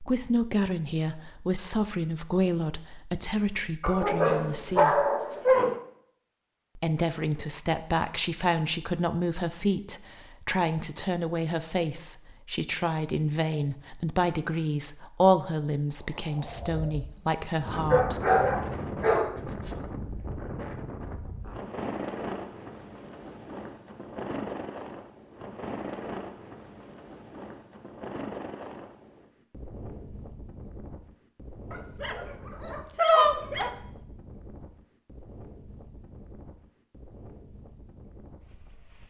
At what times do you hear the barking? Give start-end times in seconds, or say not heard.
3.8-5.8, 17.7-19.7, 31.7-33.7.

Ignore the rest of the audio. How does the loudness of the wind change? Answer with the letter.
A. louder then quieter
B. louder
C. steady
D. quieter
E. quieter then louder
D.